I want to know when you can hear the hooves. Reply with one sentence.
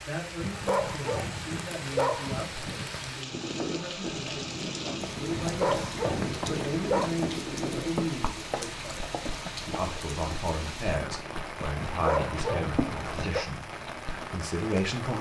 The hooves can be heard from 3.2 to 14.3 s.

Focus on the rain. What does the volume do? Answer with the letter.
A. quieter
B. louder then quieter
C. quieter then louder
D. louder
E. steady
E.